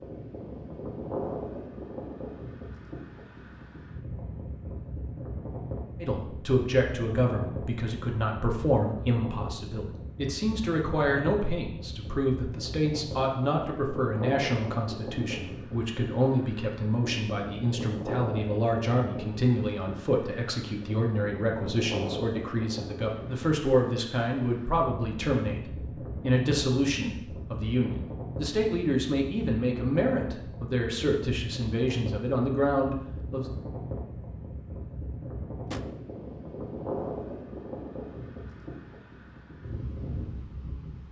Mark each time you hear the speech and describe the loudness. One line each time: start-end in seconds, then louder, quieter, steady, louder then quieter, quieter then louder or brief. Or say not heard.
6.0-33.5 steady.